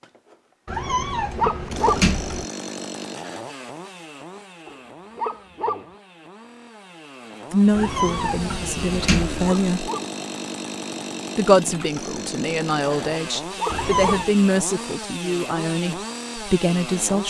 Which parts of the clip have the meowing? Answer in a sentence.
The meowing can be heard from 0.7 to 2.5 s, from 7.7 to 9.6 s and from 13.7 to 14.3 s.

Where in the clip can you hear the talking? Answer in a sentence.
The talking can be heard from 7.5 to 9.9 s and from 11.3 to 17.2 s.